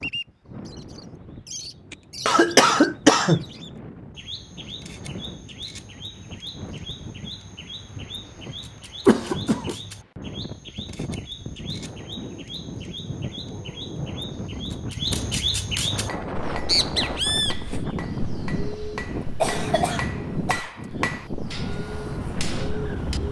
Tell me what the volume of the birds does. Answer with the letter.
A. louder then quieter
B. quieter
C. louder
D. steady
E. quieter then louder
A.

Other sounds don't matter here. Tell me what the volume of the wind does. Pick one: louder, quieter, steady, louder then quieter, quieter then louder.
louder.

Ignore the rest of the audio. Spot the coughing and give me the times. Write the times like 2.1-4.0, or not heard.
1.9-3.5, 9.1-9.8, 19.4-20.7.